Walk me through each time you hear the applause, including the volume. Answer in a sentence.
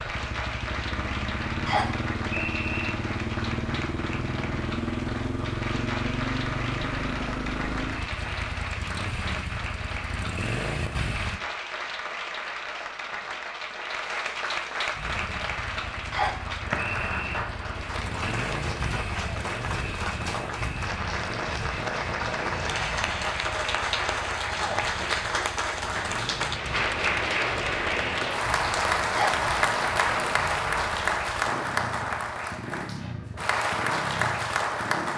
You can hear the applause from 0.0 to 35.1 s, getting louder.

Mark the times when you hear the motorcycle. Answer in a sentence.
You can hear the motorcycle from 0.0 to 11.4 s and from 14.9 to 35.1 s.